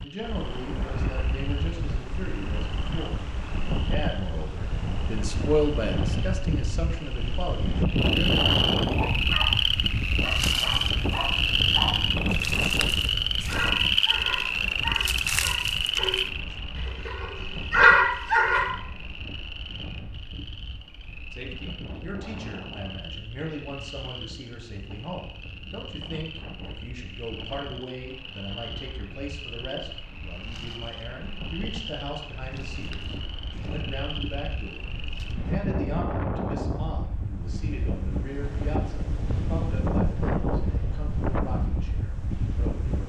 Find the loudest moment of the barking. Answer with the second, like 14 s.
18 s.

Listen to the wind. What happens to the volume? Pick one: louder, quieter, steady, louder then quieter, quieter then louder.
quieter then louder.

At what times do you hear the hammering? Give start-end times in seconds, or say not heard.
not heard.